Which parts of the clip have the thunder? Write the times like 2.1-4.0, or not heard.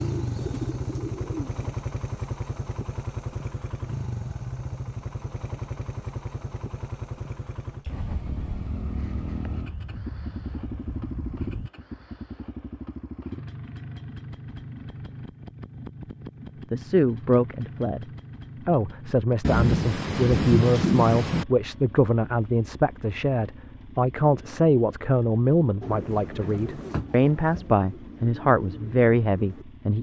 7.8-11.7, 19.4-21.4.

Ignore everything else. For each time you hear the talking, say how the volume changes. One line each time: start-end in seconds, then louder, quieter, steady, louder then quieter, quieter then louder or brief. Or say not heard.
16.7-18.1 brief
18.6-29.9 steady.